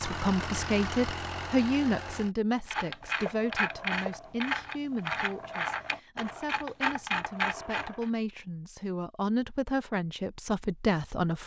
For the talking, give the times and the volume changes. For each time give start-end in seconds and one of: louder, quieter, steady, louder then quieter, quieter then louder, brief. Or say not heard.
0.0-11.4 quieter then louder.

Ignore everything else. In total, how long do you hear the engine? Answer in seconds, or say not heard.
2 s.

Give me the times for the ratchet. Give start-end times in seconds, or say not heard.
2.6-8.1.